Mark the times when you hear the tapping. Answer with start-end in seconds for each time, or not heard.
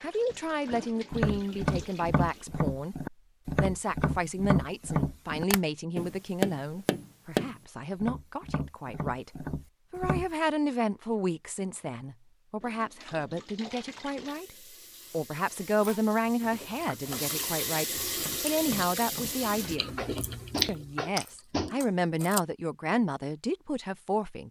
0.7-10.3, 18.1-21.8.